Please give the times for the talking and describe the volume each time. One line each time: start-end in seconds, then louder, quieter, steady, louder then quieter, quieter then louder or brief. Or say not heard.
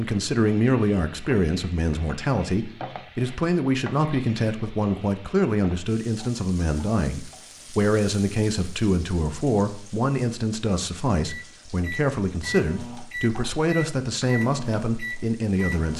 0.0-15.9 steady.